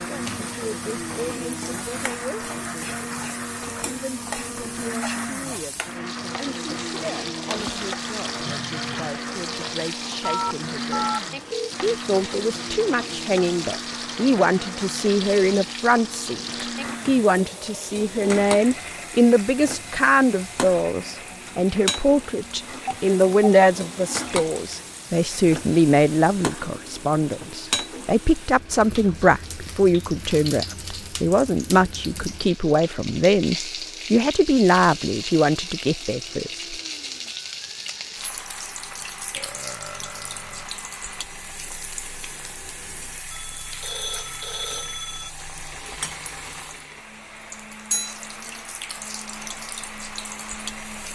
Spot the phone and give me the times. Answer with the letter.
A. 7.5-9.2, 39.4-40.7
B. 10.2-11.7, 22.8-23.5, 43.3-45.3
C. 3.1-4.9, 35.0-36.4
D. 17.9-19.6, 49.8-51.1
B.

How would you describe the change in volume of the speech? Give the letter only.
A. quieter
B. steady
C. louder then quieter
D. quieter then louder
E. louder
E.